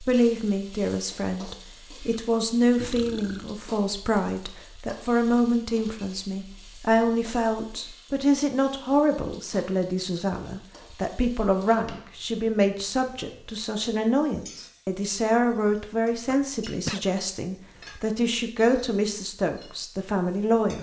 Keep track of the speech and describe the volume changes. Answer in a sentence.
The loudness of the speech stays about the same.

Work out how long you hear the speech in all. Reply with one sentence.
You can hear the speech for 21 seconds altogether.